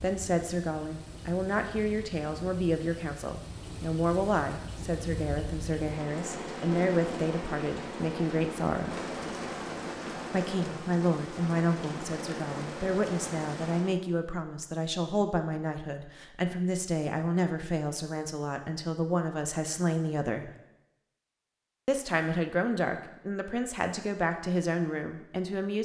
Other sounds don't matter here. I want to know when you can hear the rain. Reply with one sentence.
The rain can be heard from 0.0 to 13.9 s.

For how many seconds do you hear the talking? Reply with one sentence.
You can hear the talking for 23 seconds altogether.